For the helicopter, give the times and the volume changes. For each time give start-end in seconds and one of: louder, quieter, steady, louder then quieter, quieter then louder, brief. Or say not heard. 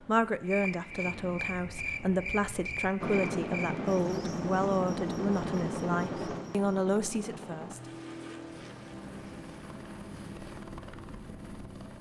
3.0-11.9 quieter.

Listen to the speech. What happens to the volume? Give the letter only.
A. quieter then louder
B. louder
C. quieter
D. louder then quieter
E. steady
E.